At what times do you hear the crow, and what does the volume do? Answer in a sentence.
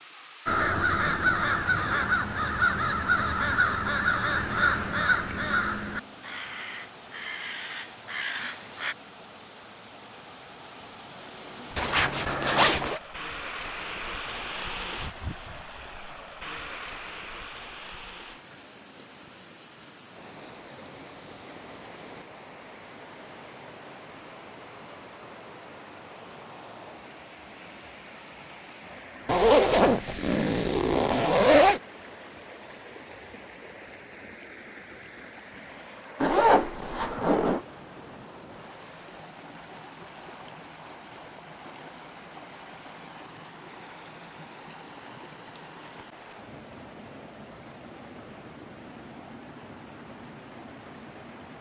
You can hear the crow from 0.5 to 8.9 s, getting quieter.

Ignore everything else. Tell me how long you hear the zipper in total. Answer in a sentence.
The zipper can be heard for 5 seconds in total.